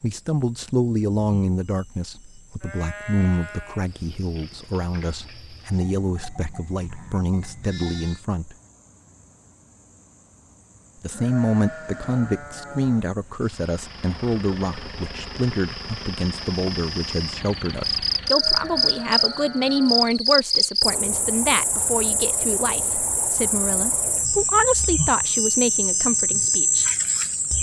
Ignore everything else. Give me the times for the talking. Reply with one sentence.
You can hear the talking from 0.0 to 8.6 s and from 11.0 to 26.9 s.